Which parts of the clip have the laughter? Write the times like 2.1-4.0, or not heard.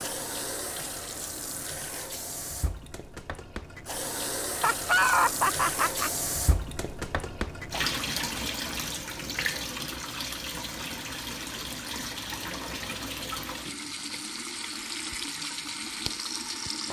4.5-6.1.